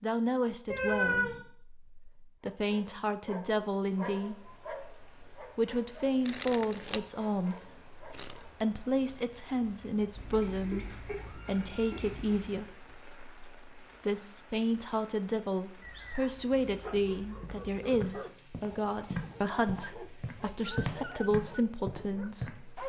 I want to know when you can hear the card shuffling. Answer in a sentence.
You can hear the card shuffling from 6.2 to 8.4 s.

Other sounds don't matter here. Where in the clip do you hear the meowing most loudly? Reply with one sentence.
The loudest moment of the meowing is at 1 second.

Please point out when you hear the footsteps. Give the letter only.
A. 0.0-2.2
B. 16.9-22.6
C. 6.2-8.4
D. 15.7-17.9
B.